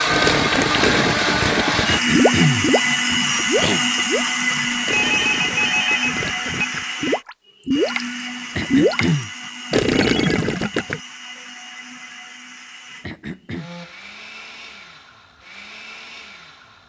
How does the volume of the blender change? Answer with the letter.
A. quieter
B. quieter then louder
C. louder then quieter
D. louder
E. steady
A.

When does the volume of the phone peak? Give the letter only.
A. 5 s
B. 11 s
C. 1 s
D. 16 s
A.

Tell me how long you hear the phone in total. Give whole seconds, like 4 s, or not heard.
2 s.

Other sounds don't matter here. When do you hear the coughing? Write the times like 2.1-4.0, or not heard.
1.9-3.9, 8.6-9.3, 13.0-13.7.